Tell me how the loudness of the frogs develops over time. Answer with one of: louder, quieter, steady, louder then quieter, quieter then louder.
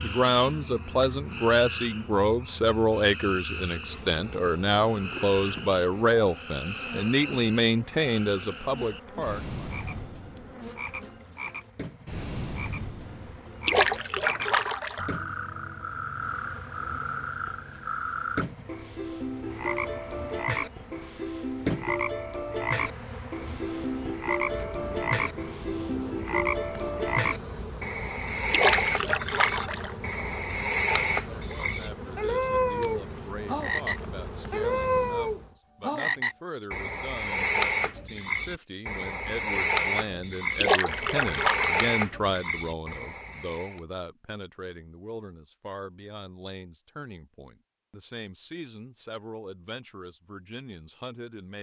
louder.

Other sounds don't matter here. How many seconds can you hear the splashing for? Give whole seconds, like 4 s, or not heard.
4 s.